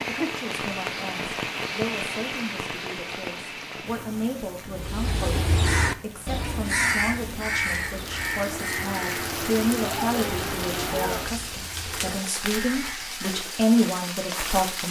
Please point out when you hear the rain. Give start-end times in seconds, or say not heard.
0.0-14.8.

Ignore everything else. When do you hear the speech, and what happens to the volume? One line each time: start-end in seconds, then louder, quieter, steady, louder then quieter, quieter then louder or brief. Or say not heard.
0.0-14.8 louder.